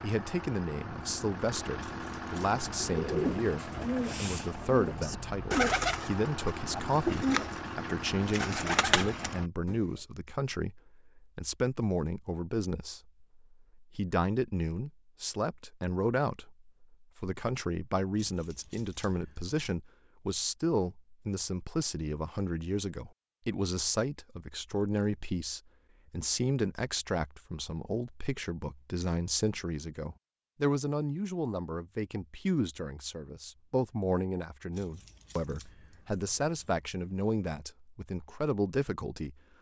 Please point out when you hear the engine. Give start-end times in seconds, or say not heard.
0.0-9.5.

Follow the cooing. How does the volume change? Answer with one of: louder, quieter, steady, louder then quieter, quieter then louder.
steady.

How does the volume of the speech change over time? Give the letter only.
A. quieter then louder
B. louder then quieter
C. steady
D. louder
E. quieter
C.